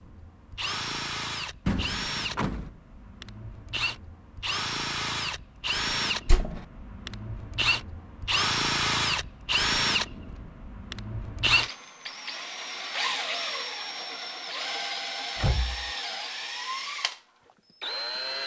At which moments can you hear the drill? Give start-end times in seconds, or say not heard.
0.0-18.4.